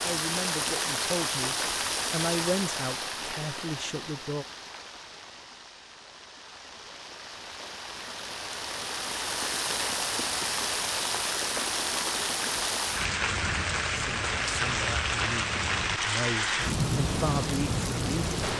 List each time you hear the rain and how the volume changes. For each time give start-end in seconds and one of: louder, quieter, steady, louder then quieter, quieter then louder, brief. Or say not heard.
0.0-18.5 quieter then louder.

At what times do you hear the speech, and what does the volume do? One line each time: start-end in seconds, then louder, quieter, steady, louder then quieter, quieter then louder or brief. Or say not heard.
0.0-4.5 louder then quieter
13.9-18.5 louder.